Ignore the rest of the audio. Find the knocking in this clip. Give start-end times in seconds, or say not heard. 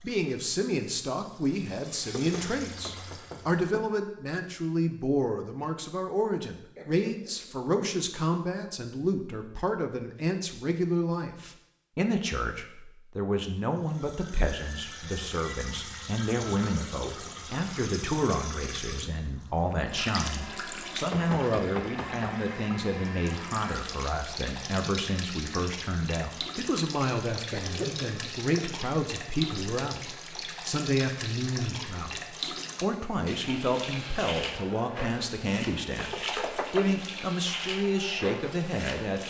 2.1-3.9, 20.8-22.4, 36.0-36.9.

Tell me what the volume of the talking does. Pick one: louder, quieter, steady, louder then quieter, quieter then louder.
steady.